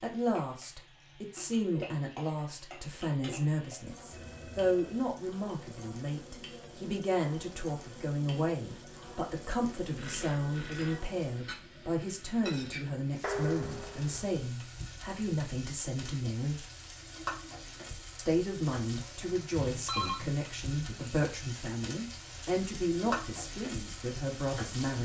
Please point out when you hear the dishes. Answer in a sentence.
The dishes can be heard from 13.2 to 14.3 s.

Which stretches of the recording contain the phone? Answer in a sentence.
The phone can be heard from 4.1 to 5.0 s, from 9.8 to 11.0 s and from 19.6 to 20.2 s.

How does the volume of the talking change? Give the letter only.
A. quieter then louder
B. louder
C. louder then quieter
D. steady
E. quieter
D.